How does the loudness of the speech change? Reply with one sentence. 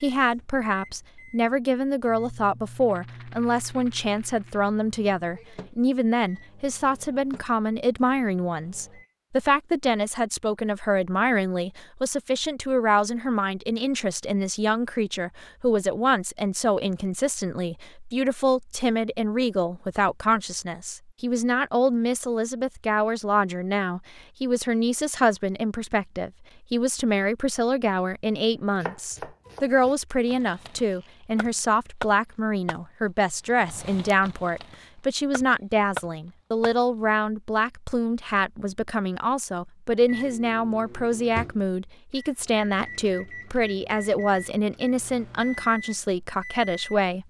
The loudness of the speech stays about the same.